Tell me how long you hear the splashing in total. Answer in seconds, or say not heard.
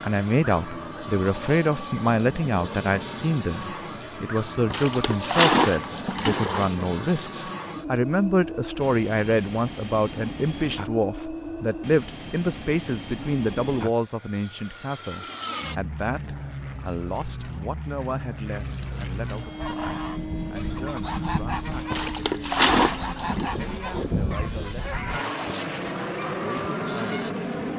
4 s.